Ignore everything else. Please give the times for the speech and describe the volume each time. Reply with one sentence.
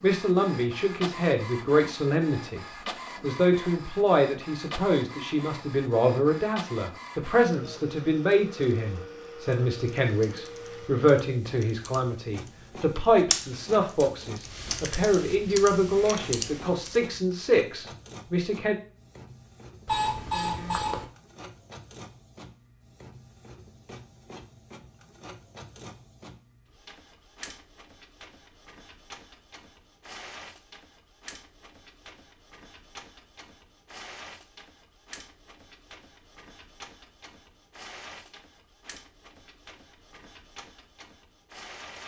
The speech can be heard from 0.0 to 18.8 s, at a steady volume.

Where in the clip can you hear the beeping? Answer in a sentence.
The beeping can be heard from 19.9 to 21.1 s.